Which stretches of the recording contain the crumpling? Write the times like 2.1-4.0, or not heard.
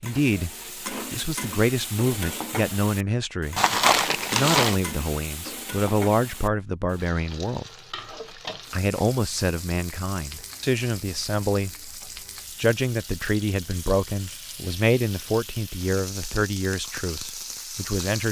3.5-4.8.